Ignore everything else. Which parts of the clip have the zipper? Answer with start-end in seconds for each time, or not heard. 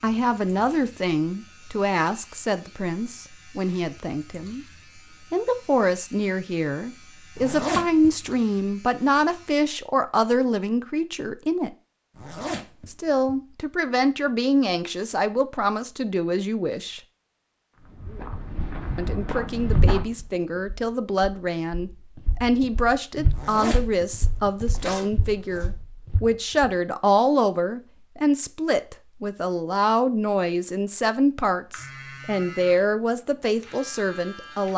7.3-8.2, 12.2-13.3, 23.3-25.7.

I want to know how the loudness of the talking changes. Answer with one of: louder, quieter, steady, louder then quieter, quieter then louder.
steady.